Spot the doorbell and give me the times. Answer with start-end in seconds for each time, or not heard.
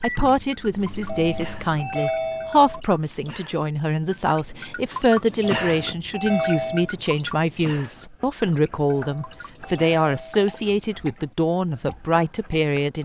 1.1-2.8, 5.4-6.9, 9.1-10.5.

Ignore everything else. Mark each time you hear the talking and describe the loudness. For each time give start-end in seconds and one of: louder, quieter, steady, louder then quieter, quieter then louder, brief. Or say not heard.
0.0-13.0 steady.